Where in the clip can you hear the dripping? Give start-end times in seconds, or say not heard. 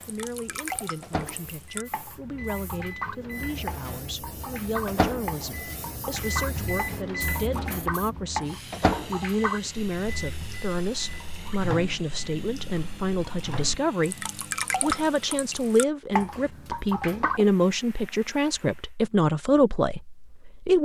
0.0-17.5.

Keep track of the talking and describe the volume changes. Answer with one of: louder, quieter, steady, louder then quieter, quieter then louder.
louder.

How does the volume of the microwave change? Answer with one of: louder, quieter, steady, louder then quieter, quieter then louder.
louder then quieter.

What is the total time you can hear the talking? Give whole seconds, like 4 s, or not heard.
21 s.